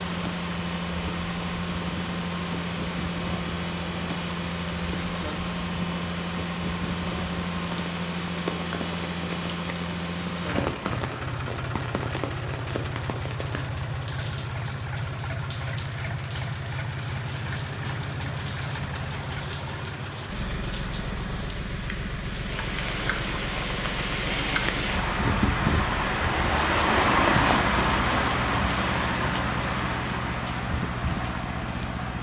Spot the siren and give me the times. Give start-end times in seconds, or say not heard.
not heard.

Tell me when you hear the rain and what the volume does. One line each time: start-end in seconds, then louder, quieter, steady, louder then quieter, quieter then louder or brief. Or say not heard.
0.0-32.1 louder.